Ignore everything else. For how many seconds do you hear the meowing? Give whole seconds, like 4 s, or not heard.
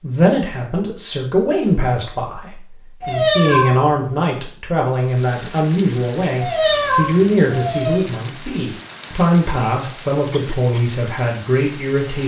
3 s.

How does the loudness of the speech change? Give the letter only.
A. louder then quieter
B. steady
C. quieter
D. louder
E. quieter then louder
B.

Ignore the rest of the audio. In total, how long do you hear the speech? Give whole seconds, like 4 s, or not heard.
12 s.